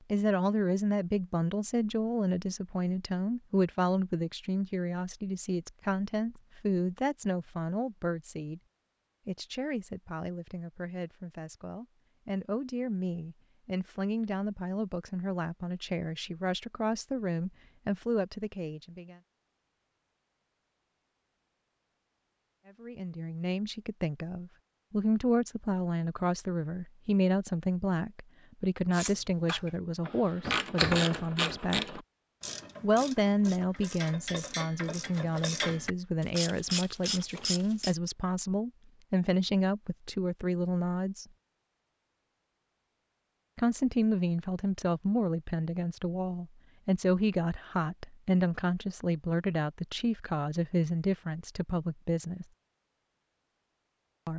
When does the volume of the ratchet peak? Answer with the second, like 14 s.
31 s.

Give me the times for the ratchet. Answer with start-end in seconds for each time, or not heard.
28.9-38.0.